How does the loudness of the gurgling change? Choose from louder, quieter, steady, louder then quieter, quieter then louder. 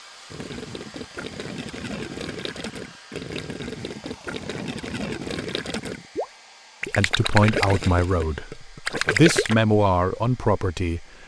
louder.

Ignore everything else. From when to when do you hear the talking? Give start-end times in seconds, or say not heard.
7.0-11.1.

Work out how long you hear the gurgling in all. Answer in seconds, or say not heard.
9 s.